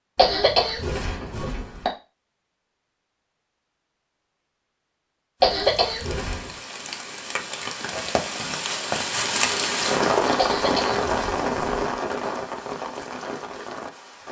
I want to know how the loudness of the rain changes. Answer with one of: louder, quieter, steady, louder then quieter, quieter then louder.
louder then quieter.